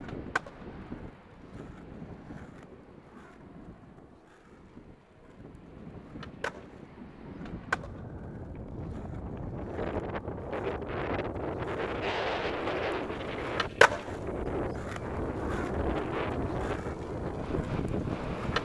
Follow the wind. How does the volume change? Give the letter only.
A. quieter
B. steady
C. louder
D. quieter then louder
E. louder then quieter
C.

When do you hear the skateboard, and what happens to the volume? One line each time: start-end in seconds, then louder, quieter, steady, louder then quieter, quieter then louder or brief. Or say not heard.
0.0-18.6 louder then quieter.